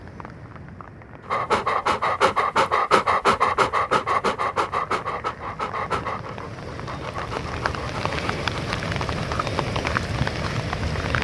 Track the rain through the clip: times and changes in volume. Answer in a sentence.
You can hear the rain from 0.0 to 11.2 s, getting louder.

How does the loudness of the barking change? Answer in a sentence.
The loudness of the barking goes down.